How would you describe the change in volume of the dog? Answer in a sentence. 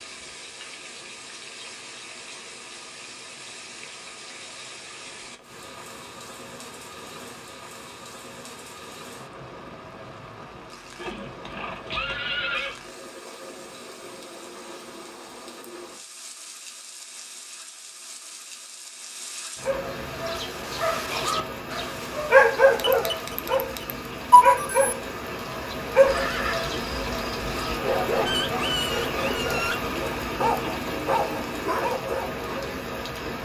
The volume of the dog goes up, then down.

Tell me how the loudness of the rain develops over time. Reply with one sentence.
The volume of the rain goes up.